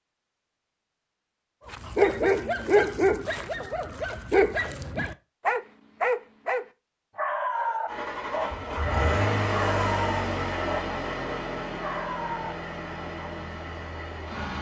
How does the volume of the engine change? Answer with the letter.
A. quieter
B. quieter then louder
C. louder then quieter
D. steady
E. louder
A.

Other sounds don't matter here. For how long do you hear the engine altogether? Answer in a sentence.
You can hear the engine for 7 seconds altogether.